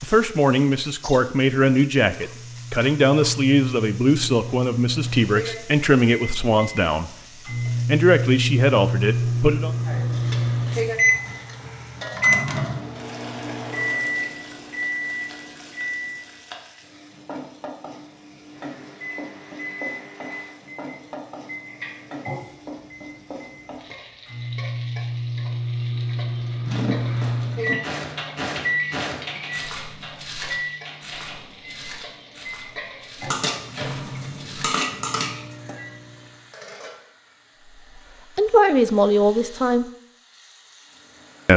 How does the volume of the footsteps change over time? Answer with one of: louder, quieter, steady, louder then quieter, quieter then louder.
quieter.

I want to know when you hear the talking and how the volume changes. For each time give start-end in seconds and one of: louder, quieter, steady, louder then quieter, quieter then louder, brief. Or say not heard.
0.0-7.1 steady
7.8-9.7 brief
38.4-39.9 brief.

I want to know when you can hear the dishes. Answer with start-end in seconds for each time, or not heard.
33.3-35.8.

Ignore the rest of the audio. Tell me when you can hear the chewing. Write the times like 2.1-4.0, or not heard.
not heard.